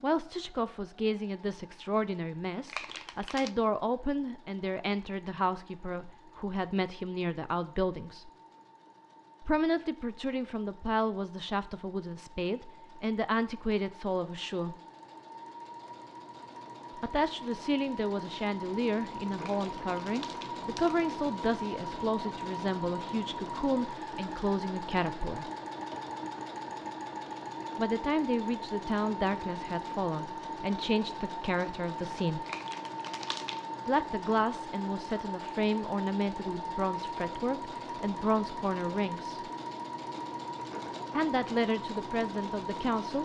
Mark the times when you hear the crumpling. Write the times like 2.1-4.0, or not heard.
2.6-3.5, 19.4-21.0, 32.5-33.6.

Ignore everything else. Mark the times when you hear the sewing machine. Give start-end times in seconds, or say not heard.
0.0-43.1.